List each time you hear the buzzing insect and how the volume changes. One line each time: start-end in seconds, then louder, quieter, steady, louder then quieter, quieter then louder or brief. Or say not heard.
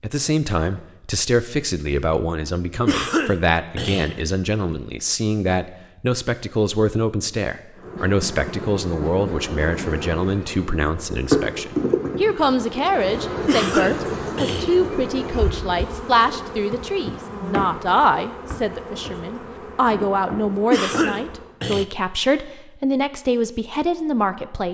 7.8-21.6 louder then quieter.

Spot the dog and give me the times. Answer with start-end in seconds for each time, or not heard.
not heard.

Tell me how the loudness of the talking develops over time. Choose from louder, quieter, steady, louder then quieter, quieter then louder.
steady.